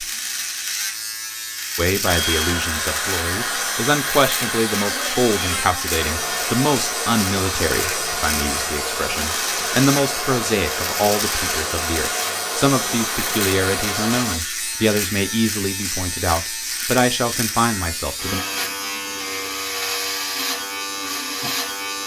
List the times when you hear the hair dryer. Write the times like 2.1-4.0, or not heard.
2.0-14.4.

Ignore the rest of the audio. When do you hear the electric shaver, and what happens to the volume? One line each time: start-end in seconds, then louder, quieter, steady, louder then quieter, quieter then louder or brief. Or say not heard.
0.0-22.0 steady.